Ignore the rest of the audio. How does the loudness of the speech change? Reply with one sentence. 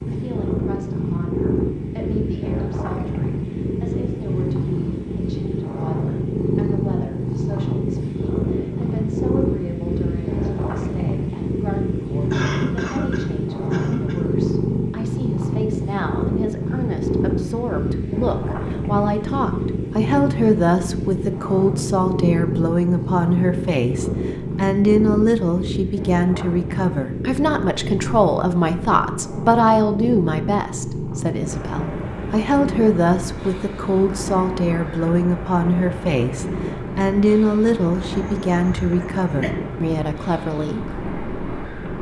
The volume of the speech goes up.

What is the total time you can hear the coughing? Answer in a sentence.
The coughing can be heard for 3 seconds in total.